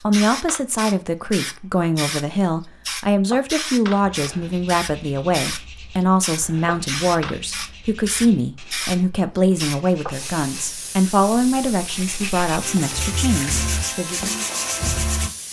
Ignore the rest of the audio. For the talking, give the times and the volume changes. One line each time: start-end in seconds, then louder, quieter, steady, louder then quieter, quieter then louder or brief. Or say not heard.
0.0-14.2 steady.